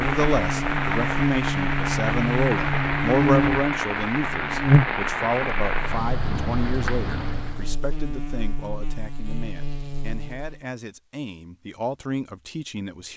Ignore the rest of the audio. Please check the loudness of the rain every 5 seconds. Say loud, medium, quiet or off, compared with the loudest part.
loud, loud, off.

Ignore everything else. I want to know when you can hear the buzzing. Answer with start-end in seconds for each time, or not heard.
0.0-10.6.